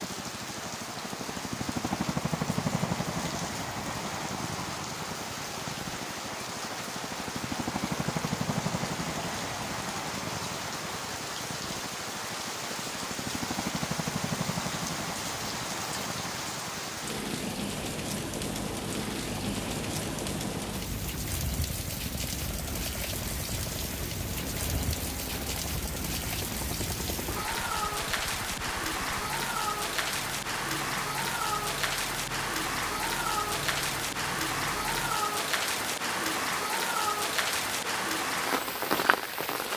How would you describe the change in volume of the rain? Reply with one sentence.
The loudness of the rain goes up.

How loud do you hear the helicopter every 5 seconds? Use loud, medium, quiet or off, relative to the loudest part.
loud, loud, loud, medium, medium, medium, medium, medium.